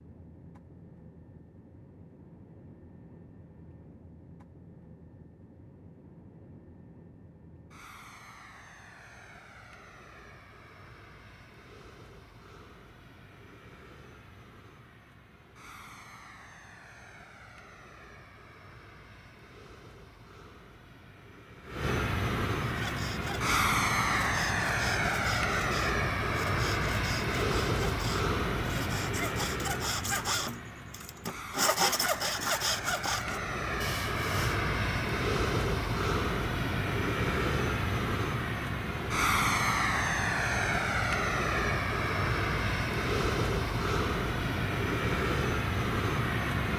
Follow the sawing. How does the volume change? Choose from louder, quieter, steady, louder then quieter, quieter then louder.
louder.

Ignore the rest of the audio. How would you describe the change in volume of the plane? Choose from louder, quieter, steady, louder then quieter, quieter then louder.
louder.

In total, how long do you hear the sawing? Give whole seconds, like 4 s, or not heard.
12 s.